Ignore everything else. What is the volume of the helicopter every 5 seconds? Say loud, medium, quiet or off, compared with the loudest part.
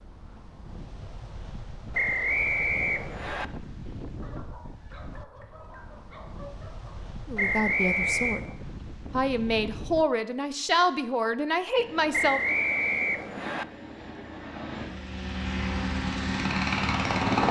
off, off, quiet, loud.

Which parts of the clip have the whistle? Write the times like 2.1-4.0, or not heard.
1.9-3.5, 7.3-8.4, 12.1-13.7.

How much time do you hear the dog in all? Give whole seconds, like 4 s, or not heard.
3 s.